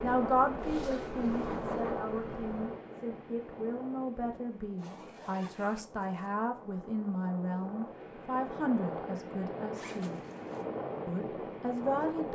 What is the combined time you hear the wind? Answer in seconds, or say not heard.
12 s.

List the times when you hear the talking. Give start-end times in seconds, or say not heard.
0.0-10.2, 11.1-12.3.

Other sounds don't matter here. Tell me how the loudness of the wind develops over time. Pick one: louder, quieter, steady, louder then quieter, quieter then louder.
quieter then louder.